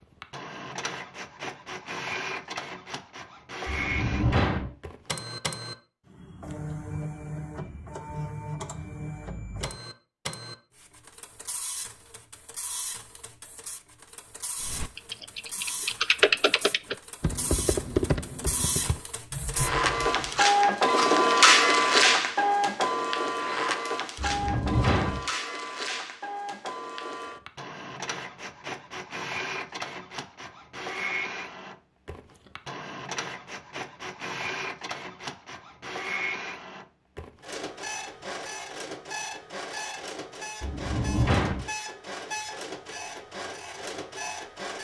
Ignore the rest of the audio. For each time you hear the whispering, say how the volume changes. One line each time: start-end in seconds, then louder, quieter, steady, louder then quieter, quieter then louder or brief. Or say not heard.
not heard.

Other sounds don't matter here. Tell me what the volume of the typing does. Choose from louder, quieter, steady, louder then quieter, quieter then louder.
louder then quieter.